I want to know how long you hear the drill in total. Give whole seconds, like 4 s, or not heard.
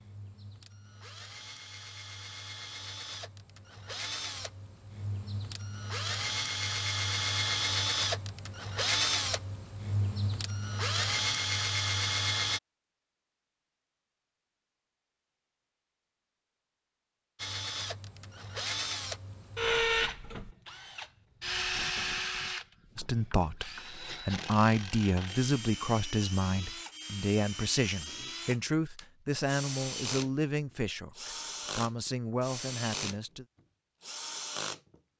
30 s.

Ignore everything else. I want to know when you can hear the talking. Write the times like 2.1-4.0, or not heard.
22.9-33.5.